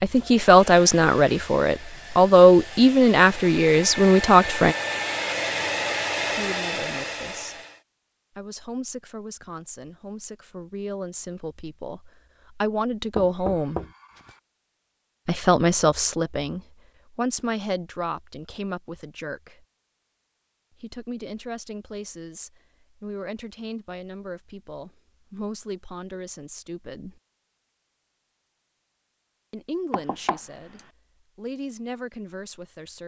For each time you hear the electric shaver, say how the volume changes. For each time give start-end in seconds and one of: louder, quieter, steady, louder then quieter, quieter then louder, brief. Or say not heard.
not heard.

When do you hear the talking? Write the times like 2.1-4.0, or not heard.
0.0-4.8, 6.2-7.6, 8.3-13.8, 15.2-19.6, 20.8-27.2, 29.5-33.0.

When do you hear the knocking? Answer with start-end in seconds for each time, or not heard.
13.2-14.3, 29.9-30.8.